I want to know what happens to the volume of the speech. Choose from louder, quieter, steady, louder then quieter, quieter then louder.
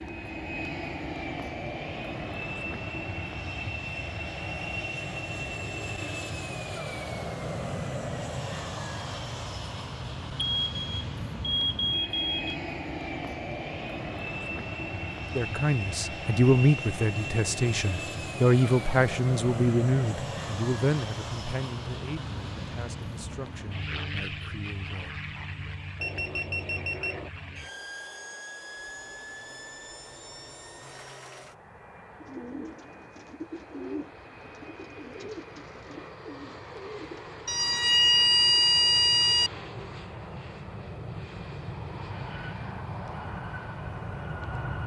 quieter.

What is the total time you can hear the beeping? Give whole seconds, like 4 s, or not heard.
5 s.